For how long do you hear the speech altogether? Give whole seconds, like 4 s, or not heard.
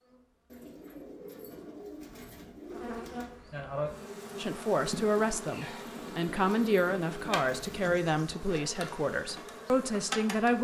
6 s.